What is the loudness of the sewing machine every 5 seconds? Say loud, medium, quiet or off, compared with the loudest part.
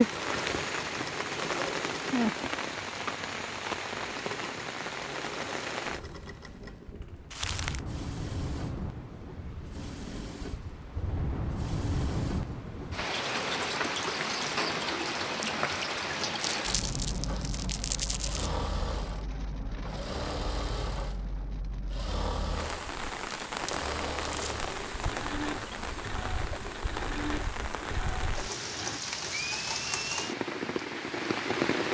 loud, medium, medium, loud, loud, loud, off.